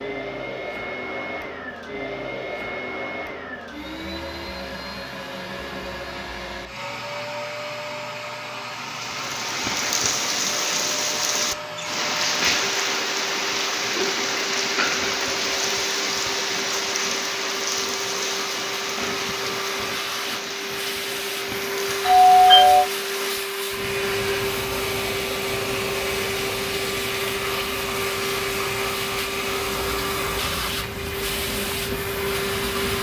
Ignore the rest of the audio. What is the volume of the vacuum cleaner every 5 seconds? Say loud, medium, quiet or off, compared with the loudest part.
medium, medium, medium, medium, loud, loud, loud.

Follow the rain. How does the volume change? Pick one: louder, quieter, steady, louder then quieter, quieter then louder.
quieter.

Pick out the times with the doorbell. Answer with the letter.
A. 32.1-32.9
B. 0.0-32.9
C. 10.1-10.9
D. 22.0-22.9
D.